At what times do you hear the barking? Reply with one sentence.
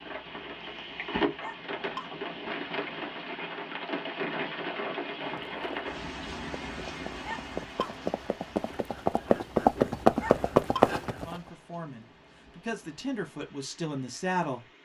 You can hear the barking from 1.4 to 2.1 s, from 7.2 to 8.0 s and from 10.2 to 10.9 s.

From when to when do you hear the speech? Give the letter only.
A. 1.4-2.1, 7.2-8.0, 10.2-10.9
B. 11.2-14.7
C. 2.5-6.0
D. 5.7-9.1
B.